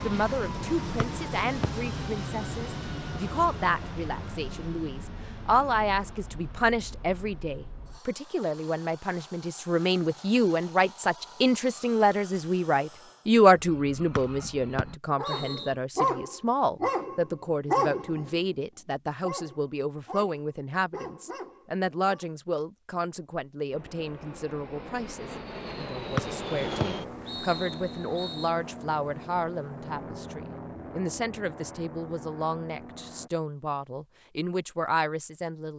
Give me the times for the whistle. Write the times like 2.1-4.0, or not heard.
1.0-1.7, 14.2-15.7, 26.1-28.5.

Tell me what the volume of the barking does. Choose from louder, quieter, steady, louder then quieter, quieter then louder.
quieter.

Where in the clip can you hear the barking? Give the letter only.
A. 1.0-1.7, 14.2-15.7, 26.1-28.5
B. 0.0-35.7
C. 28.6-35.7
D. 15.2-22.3
D.